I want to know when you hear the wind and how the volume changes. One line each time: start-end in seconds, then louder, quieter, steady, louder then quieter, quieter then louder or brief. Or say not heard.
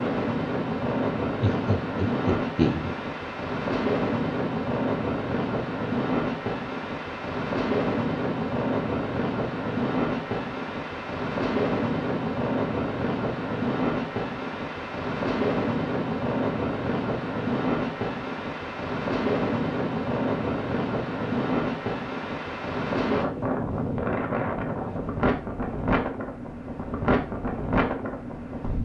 0.0-28.8 steady.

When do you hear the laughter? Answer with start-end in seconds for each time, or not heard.
1.4-3.0.